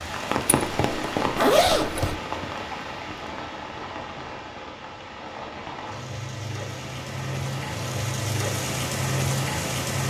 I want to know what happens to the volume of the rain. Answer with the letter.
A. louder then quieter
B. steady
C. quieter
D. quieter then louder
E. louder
D.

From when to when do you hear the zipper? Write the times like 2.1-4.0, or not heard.
0.5-2.1.